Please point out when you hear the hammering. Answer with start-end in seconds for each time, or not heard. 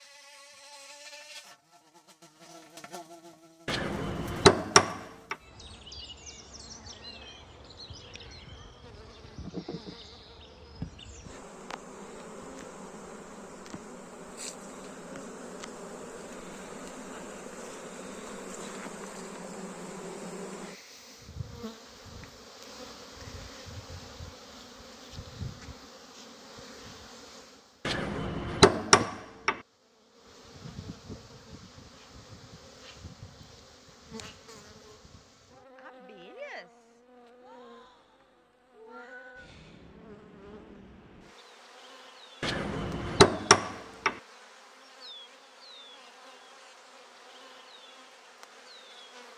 3.6-5.3, 27.9-29.6, 42.4-44.1.